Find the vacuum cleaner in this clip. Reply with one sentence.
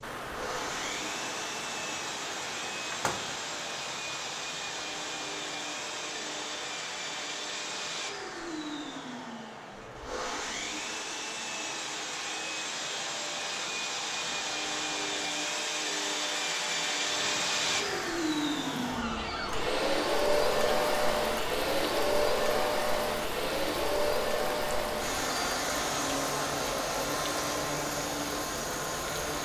The vacuum cleaner can be heard from 0.0 to 29.4 s.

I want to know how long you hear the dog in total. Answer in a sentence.
The dog can't be heard in this clip.